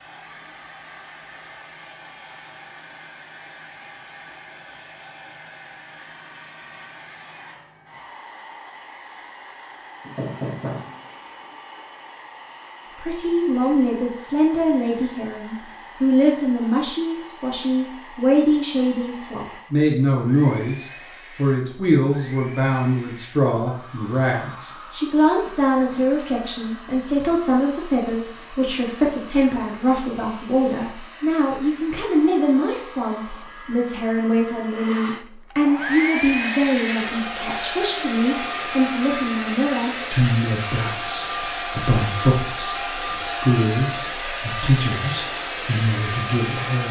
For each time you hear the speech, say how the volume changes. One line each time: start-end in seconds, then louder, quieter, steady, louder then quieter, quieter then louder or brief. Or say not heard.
12.9-46.8 steady.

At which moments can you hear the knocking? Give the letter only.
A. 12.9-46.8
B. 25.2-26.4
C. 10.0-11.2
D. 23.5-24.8
C.